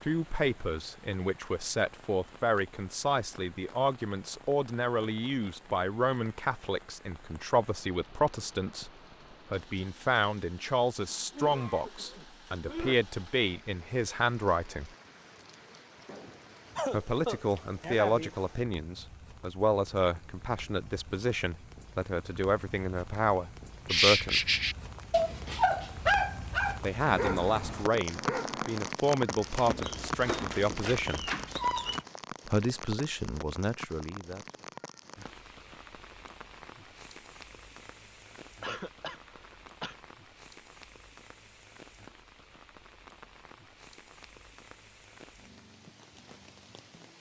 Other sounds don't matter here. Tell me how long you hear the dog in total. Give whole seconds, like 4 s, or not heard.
8 s.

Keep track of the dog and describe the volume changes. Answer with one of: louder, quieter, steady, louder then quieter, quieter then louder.
quieter then louder.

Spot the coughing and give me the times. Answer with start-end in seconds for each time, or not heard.
11.3-12.9, 16.1-18.4, 38.6-40.0.